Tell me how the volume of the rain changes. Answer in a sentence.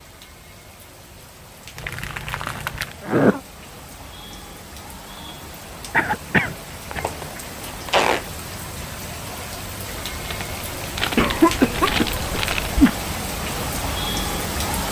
The loudness of the rain goes up.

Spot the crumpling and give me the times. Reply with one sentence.
You can hear the crumpling from 1.8 to 3.0 s, from 7.0 to 8.3 s and from 10.2 to 12.7 s.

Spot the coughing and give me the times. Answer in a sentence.
The coughing can be heard from 2.5 to 3.4 s, from 5.9 to 7.0 s and from 11.2 to 12.9 s.